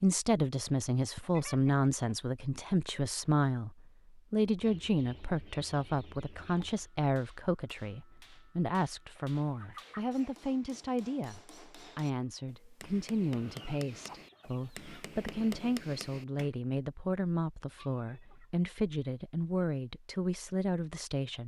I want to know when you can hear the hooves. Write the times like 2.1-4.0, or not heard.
not heard.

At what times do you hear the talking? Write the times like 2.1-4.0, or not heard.
0.0-21.4.